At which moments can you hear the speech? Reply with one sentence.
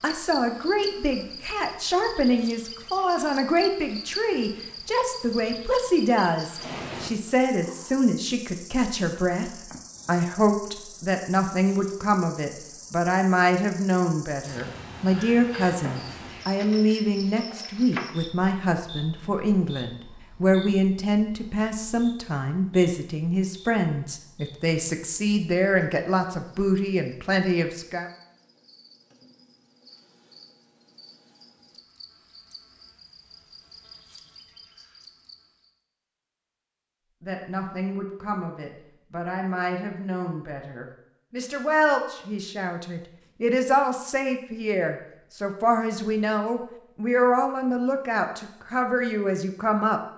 You can hear the speech from 0.0 to 28.1 s and from 37.2 to 50.0 s.